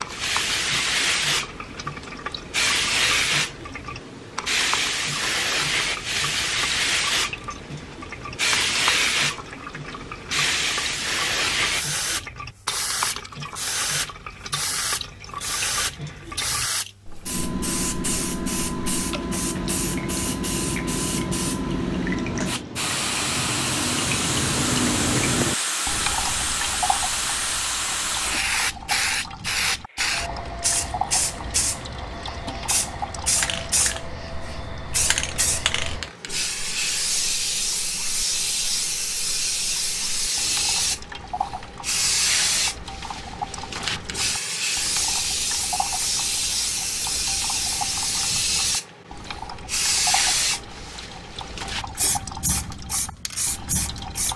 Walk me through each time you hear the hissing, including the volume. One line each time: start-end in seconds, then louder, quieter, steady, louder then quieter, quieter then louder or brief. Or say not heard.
0.0-54.3 steady.